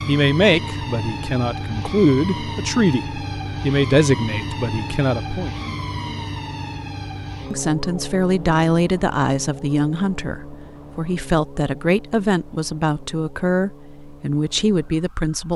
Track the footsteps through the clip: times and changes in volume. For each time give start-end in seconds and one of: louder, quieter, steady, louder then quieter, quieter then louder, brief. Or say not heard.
not heard.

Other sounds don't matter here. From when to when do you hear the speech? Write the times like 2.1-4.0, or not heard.
0.1-5.5, 7.5-15.5.